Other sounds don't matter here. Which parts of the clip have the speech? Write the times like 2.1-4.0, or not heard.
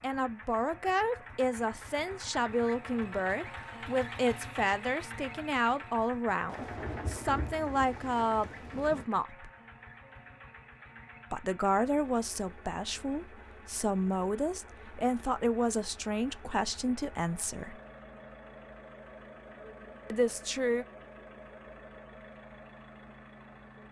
0.0-9.5, 11.3-17.8, 20.1-20.9.